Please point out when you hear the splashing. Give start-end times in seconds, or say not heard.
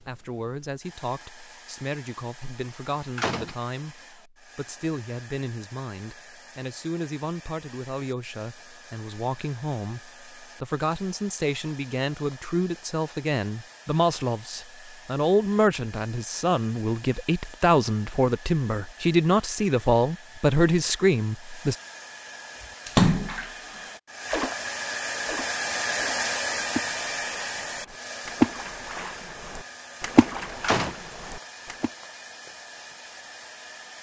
22.9-24.6, 25.2-31.9.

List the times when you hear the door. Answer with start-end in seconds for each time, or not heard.
3.0-3.5, 30.3-30.9.